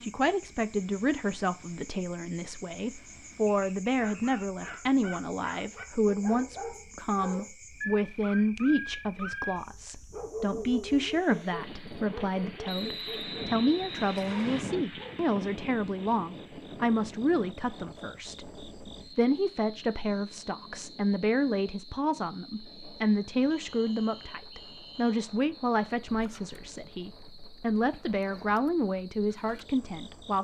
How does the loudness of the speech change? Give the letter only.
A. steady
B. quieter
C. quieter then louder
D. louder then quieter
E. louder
A.